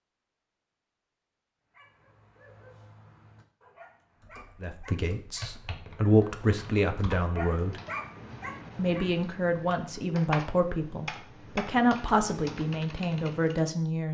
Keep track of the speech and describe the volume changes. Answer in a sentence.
The loudness of the speech stays about the same.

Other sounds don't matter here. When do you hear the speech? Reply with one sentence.
The speech can be heard from 4.6 to 7.8 s and from 8.8 to 14.1 s.